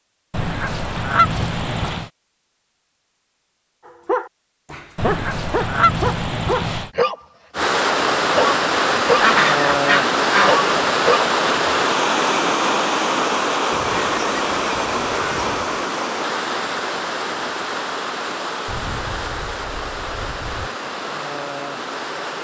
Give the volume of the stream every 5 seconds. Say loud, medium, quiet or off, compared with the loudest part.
off, loud, loud, medium, medium.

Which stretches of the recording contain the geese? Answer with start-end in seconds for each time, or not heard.
0.3-2.1, 5.0-6.9, 9.2-10.7, 13.7-15.8, 18.6-20.7.